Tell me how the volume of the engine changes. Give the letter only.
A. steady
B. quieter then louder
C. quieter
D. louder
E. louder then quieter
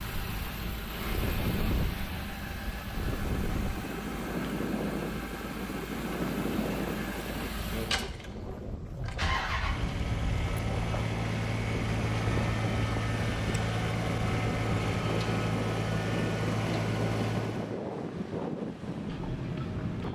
D.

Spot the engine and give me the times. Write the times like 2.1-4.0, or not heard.
0.0-17.8.